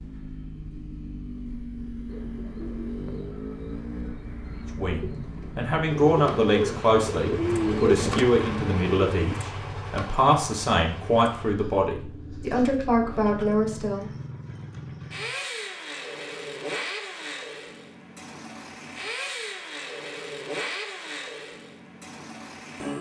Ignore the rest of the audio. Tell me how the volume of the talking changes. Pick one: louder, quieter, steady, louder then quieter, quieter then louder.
steady.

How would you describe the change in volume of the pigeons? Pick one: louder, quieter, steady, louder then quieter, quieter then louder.
louder.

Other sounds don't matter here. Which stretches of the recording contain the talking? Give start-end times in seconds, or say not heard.
4.8-14.1.